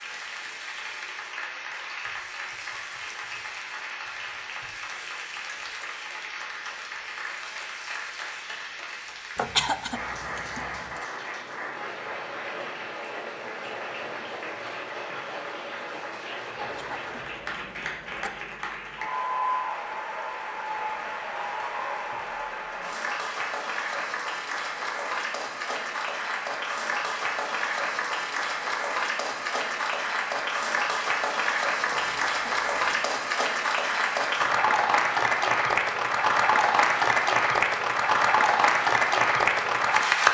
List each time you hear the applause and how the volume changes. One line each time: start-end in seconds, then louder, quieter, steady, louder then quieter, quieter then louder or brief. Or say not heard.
0.0-40.3 louder.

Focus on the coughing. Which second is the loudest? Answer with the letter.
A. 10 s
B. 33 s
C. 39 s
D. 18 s
A.